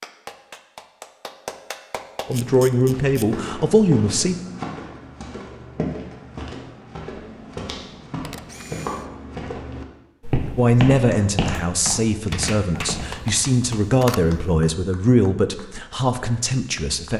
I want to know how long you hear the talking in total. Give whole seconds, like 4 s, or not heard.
9 s.